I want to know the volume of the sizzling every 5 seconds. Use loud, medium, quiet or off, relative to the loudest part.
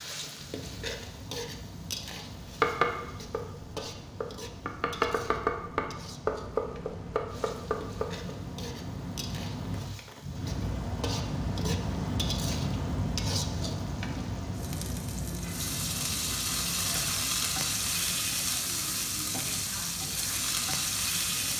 medium, quiet, medium, loud, loud.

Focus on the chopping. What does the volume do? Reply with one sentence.
The volume of the chopping goes up, then down.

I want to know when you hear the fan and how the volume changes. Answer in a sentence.
You can hear the fan from 0.2 to 21.5 s, getting louder then quieter.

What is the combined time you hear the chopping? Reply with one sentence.
The chopping can be heard for 6 seconds in total.